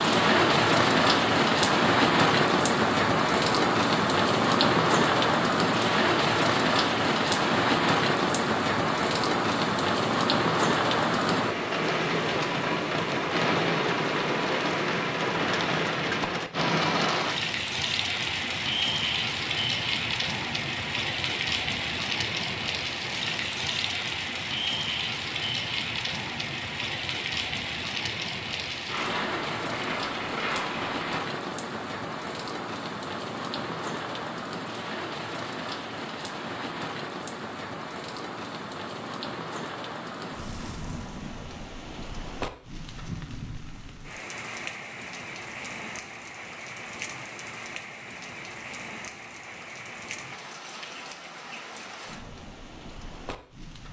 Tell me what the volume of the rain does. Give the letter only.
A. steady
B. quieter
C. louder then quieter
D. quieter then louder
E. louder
B.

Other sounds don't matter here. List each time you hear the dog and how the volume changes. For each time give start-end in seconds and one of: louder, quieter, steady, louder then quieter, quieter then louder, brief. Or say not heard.
not heard.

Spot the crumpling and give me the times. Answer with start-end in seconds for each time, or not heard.
28.9-31.2.